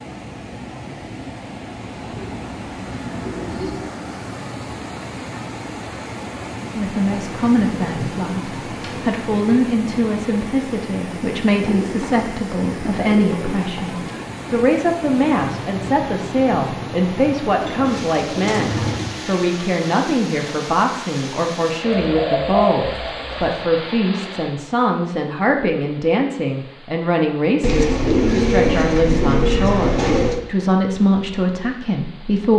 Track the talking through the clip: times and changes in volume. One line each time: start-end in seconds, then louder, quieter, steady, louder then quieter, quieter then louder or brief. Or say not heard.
6.6-32.5 steady.